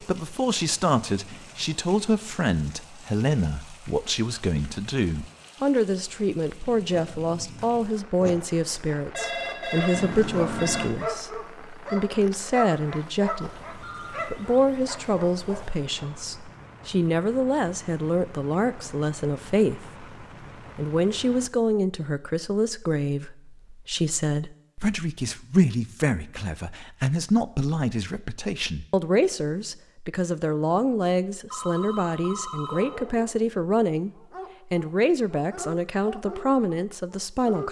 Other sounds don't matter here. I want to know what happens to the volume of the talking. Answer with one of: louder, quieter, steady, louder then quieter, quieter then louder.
steady.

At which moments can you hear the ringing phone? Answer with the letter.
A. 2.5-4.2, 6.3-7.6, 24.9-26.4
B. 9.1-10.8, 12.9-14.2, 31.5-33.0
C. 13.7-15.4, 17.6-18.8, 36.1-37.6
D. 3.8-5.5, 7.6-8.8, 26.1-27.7
B.